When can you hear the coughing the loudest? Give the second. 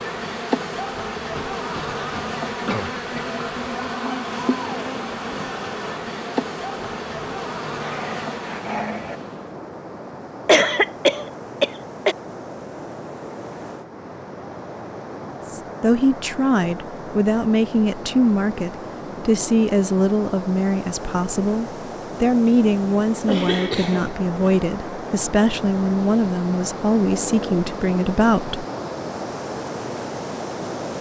11 s.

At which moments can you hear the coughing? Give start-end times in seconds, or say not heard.
1.4-3.4, 10.4-12.2, 23.2-24.6.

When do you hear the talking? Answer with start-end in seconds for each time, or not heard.
15.5-28.6.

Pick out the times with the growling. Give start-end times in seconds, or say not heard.
7.8-9.2, 27.0-27.7.